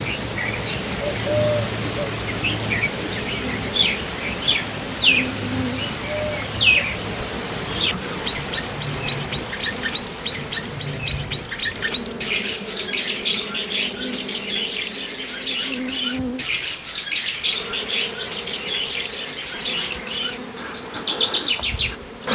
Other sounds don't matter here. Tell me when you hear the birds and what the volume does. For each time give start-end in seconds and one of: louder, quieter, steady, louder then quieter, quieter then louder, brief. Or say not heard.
0.0-22.3 steady.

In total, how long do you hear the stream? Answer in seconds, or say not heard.
22 s.